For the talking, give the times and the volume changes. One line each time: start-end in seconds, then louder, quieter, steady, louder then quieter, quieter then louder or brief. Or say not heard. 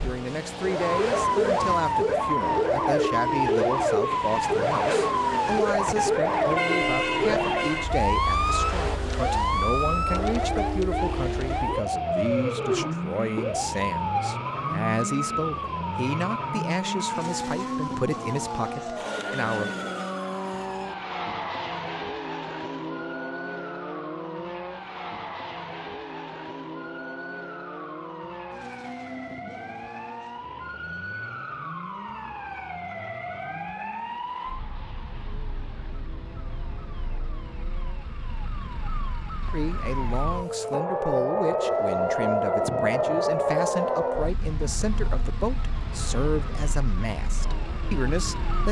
0.0-19.8 steady
39.5-48.6 steady.